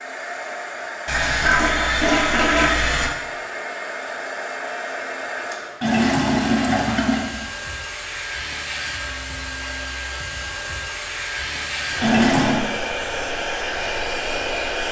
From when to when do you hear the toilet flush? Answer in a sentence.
The toilet flush can be heard from 1.1 to 3.1 s, from 5.8 to 7.3 s and from 12.0 to 12.7 s.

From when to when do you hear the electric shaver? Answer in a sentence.
You can't hear the electric shaver here.